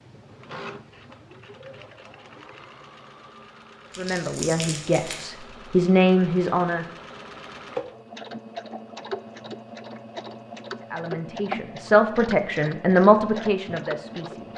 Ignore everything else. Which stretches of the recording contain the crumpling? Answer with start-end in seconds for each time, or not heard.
3.9-5.2.